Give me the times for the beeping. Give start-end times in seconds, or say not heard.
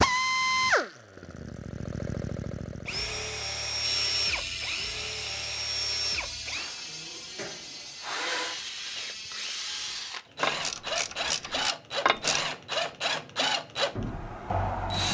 not heard.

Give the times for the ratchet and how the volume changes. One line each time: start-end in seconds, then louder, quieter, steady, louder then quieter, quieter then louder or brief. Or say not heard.
3.8-12.4 quieter then louder.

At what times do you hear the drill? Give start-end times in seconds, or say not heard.
0.0-15.0.